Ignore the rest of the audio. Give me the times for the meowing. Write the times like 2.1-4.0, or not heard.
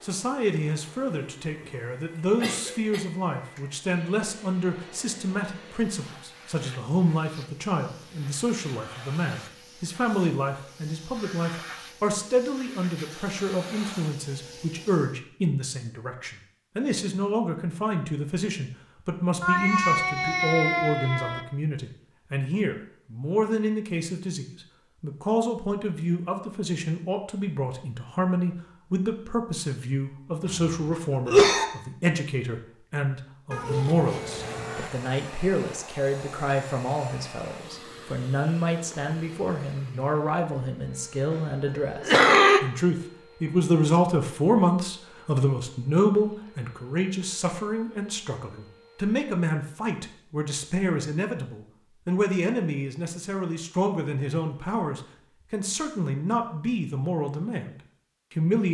19.4-21.4, 33.5-34.9.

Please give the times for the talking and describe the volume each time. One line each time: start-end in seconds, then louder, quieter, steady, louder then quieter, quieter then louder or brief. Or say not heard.
0.0-58.6 steady.